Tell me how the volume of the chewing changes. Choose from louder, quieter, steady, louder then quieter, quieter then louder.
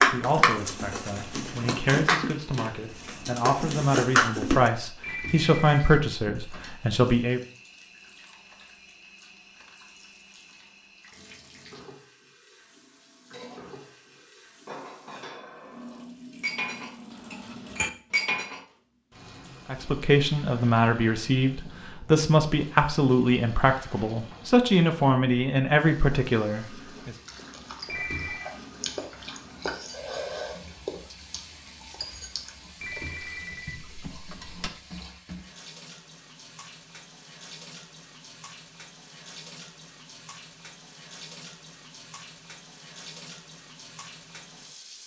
louder then quieter.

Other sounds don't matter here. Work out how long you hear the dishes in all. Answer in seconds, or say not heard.
10 s.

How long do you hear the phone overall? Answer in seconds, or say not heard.
4 s.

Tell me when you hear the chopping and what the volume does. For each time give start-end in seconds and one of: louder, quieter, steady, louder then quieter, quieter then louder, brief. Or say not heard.
not heard.